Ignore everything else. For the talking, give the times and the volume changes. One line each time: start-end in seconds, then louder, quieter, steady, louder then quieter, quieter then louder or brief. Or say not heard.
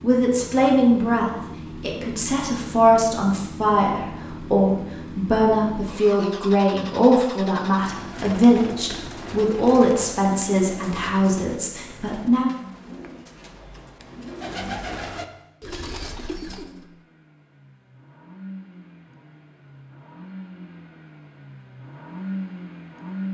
0.0-12.5 steady.